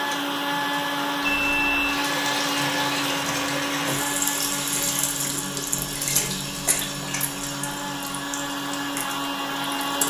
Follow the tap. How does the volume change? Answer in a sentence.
The loudness of the tap goes up, then down.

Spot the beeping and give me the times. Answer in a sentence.
You can hear the beeping from 1.2 to 1.9 s.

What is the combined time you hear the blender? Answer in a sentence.
The blender can be heard for 10 seconds in total.